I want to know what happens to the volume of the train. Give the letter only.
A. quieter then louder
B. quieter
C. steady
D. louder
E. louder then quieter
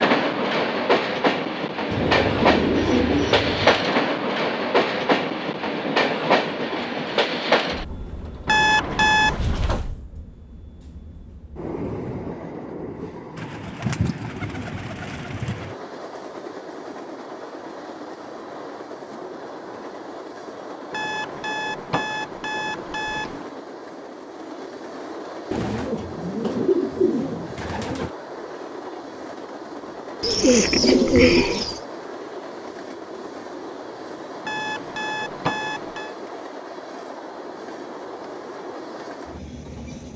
B.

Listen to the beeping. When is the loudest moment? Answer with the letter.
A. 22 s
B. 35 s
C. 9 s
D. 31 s
C.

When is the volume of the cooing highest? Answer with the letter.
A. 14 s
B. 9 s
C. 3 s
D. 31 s
D.